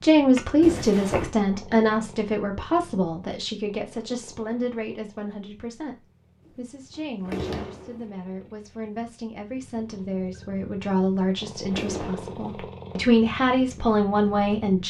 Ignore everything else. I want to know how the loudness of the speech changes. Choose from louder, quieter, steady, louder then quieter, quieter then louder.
quieter then louder.